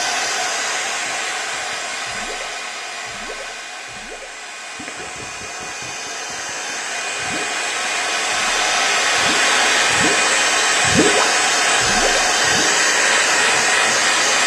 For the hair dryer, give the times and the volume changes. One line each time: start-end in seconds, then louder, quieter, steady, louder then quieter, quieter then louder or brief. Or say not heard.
0.0-14.4 quieter then louder.